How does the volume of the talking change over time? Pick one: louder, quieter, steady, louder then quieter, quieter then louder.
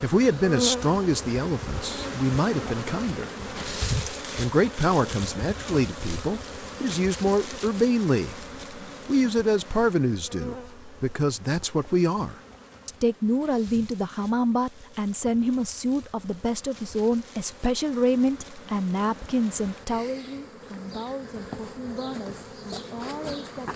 quieter.